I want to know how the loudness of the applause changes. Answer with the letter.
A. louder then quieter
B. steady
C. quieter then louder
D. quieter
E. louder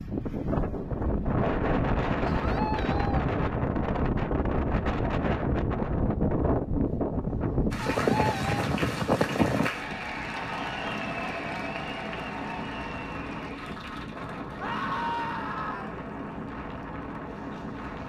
D.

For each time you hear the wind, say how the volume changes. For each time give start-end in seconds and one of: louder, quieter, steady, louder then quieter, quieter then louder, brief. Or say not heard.
0.0-18.0 quieter.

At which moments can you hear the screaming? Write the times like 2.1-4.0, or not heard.
2.2-3.3, 7.9-8.7, 14.6-16.0.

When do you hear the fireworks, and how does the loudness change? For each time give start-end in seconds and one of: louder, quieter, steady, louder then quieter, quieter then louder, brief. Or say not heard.
not heard.